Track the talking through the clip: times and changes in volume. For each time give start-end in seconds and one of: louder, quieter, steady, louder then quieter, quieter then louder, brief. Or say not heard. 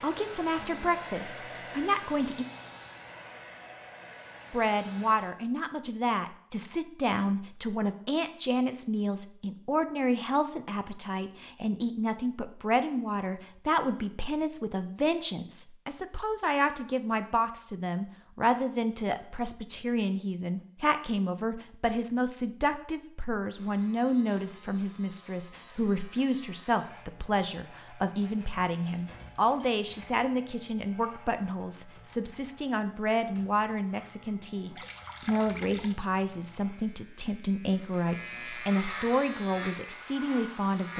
0.0-2.5 brief
4.5-40.9 steady.